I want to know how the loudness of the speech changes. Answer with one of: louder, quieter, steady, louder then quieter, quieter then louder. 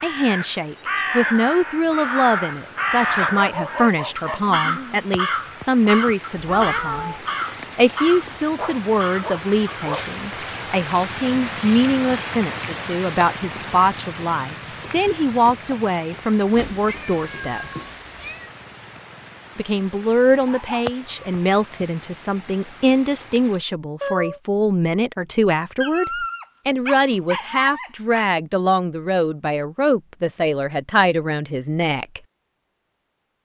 steady.